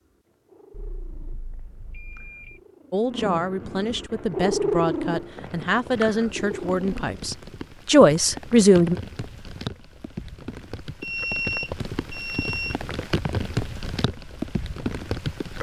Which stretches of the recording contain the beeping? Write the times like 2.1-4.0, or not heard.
0.7-2.6, 10.9-12.8.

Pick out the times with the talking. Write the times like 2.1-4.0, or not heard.
2.9-8.9.